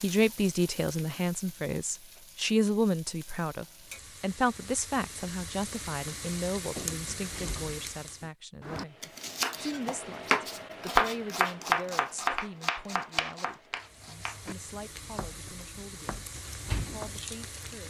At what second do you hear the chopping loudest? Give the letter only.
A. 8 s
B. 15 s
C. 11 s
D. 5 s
C.